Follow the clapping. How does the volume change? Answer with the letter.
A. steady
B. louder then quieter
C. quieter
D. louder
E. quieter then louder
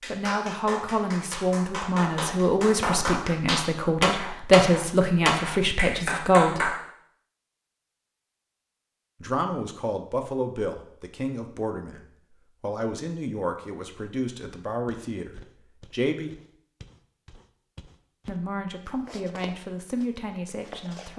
D.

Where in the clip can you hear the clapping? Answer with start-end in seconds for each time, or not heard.
0.0-6.8.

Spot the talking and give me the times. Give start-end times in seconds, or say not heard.
0.1-6.7, 9.2-16.3, 18.2-21.1.